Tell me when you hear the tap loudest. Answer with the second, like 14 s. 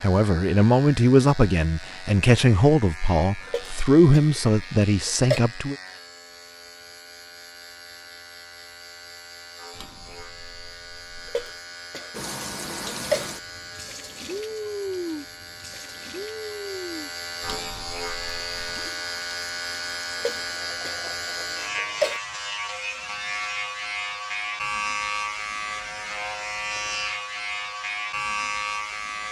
15 s.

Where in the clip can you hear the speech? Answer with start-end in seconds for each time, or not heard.
0.0-5.8.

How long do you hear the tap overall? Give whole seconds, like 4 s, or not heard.
10 s.